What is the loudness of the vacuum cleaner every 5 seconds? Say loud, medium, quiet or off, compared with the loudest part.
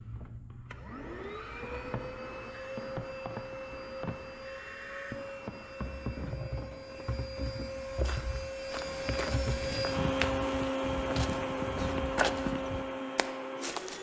medium, loud, loud.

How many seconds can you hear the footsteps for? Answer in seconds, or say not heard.
6 s.